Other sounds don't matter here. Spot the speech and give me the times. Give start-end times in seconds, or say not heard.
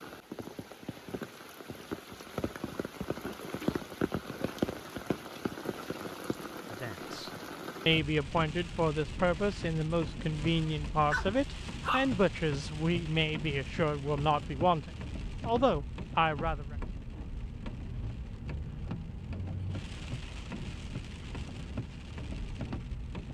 6.7-16.8.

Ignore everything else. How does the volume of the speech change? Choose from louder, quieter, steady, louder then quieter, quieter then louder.
steady.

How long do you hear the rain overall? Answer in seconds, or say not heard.
23 s.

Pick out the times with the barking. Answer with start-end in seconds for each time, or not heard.
10.4-12.1.